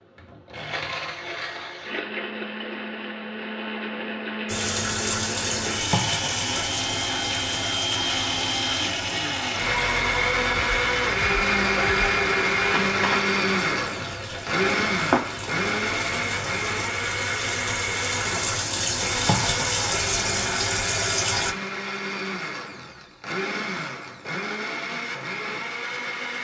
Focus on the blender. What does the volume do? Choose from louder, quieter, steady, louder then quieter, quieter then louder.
louder then quieter.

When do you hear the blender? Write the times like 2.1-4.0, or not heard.
0.0-26.3.